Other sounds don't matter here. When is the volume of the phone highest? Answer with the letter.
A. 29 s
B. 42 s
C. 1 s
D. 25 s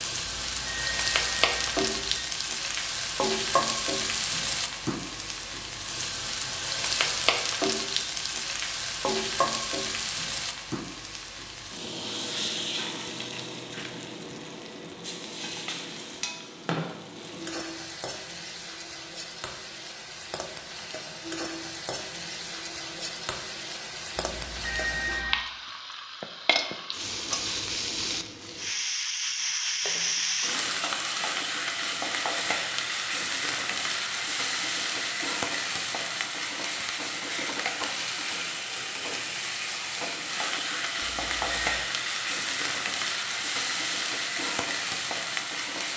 D.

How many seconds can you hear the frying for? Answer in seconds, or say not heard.
46 s.